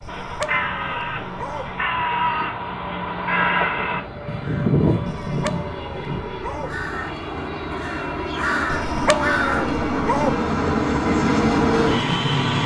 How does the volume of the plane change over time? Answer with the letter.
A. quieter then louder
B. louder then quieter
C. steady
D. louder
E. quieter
D.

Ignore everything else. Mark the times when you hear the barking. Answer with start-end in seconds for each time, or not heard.
0.0-1.9, 5.0-6.8, 8.7-10.4.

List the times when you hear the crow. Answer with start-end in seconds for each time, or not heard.
0.1-9.7.